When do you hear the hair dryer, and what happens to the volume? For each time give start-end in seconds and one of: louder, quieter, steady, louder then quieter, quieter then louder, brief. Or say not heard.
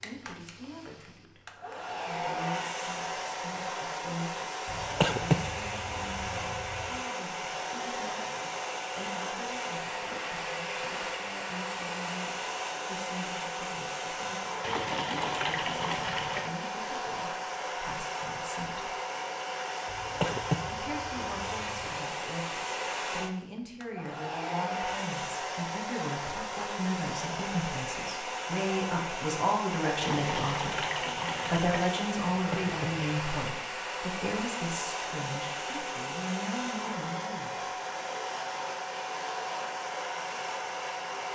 0.0-41.3 steady.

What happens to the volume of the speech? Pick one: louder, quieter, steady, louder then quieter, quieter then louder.
louder.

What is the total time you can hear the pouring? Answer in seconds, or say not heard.
4 s.